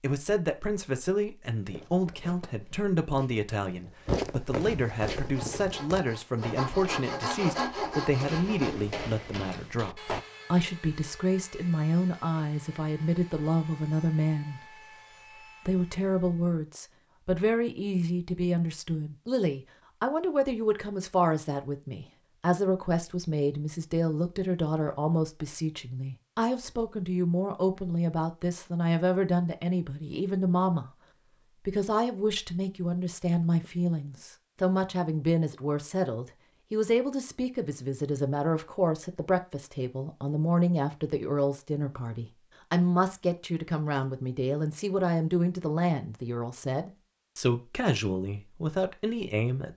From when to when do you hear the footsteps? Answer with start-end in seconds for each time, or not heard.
1.6-10.2.